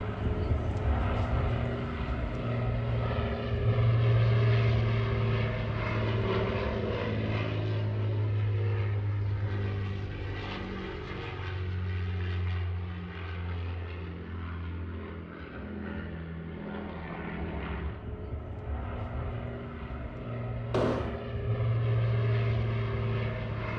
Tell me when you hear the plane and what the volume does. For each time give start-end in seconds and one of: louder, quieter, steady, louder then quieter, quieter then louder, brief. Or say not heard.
0.0-23.7 quieter then louder.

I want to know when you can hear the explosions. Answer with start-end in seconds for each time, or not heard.
20.7-21.2.